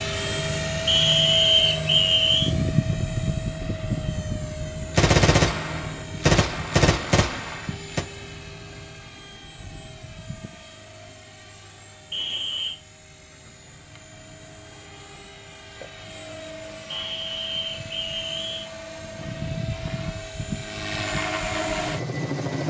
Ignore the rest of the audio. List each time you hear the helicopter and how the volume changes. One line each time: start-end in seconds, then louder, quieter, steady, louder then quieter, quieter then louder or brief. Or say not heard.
0.0-22.6 quieter then louder.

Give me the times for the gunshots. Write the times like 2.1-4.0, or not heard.
5.0-8.1.